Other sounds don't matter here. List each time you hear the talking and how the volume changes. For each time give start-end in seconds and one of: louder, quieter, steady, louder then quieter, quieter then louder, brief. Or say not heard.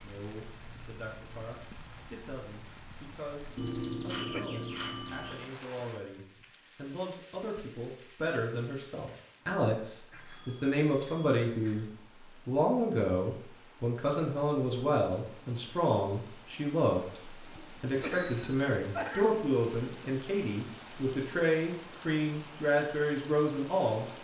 0.0-24.1 louder.